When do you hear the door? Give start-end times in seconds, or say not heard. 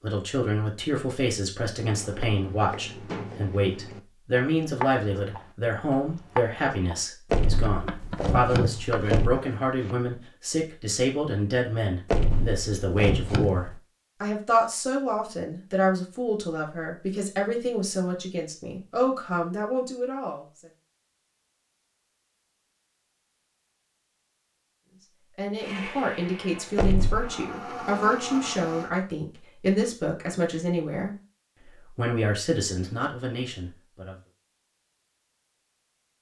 7.3-9.4, 12.1-13.8, 26.8-27.3.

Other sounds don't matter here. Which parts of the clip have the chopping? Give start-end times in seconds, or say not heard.
1.8-9.9.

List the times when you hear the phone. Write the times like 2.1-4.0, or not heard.
not heard.